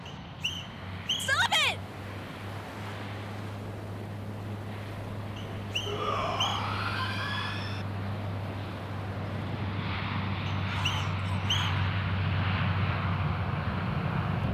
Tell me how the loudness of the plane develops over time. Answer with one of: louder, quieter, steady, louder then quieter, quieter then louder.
louder.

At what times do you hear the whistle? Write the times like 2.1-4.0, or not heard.
0.1-1.4, 5.3-6.7, 10.4-11.8.